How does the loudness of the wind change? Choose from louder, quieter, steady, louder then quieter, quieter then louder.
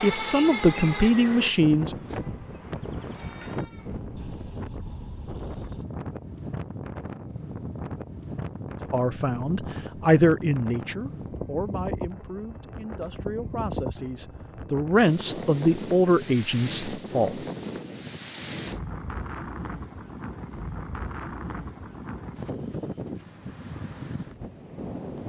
steady.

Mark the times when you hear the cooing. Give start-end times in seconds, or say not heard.
not heard.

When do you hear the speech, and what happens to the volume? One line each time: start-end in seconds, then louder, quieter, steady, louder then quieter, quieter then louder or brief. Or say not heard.
0.0-1.9 brief
8.9-17.4 quieter then louder.